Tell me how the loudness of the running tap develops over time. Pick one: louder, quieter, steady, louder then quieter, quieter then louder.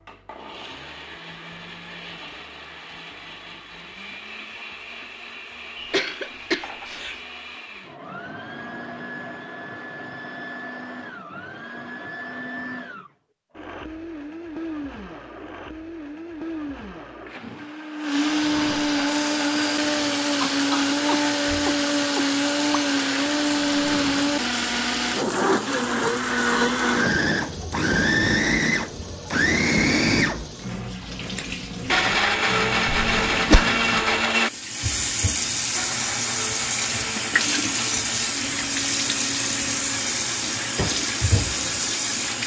louder.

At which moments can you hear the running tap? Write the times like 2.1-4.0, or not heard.
19.1-42.4.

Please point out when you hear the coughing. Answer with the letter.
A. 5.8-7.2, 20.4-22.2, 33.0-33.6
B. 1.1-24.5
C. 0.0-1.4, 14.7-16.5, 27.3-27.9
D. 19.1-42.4
A.